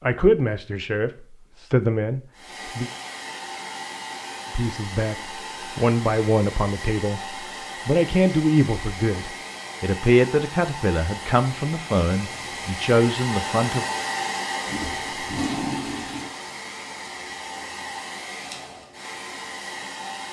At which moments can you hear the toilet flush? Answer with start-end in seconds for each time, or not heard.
14.7-16.3.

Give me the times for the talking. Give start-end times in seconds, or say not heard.
0.0-2.9, 4.5-13.8.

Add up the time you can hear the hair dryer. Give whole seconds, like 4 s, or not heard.
18 s.